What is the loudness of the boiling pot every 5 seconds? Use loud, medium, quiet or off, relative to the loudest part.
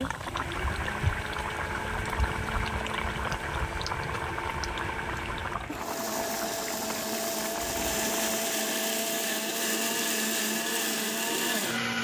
loud, loud, off.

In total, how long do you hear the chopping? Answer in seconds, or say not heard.
not heard.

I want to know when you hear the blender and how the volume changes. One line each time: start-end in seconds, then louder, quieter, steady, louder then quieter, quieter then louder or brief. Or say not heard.
0.1-11.9 louder.